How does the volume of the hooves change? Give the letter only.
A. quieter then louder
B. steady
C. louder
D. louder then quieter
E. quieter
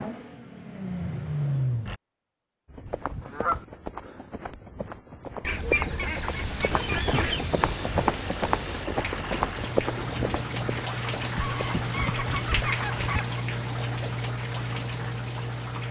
D.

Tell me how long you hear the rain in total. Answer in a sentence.
You can hear the rain for 10 seconds altogether.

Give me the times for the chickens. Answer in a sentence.
The chickens can be heard from 2.9 to 3.6 s, from 5.4 to 7.5 s and from 11.4 to 13.4 s.